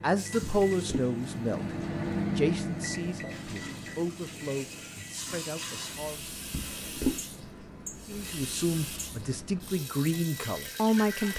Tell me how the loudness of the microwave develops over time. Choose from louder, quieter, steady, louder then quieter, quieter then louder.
quieter.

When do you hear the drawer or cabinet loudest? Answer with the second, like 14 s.
7 s.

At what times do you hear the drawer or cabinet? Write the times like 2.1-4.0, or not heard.
0.4-1.1, 6.5-7.2.